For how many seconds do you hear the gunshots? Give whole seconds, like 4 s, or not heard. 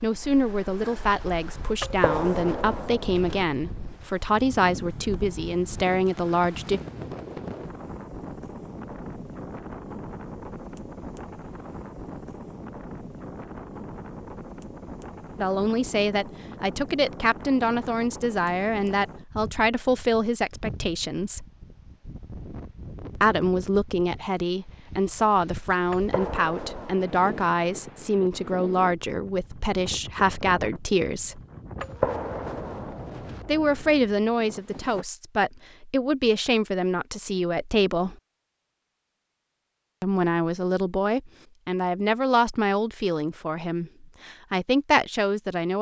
5 s.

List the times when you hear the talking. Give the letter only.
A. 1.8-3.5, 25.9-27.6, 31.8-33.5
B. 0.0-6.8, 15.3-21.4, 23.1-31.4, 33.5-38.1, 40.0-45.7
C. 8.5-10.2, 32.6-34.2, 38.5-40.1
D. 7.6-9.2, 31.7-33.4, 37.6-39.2
B.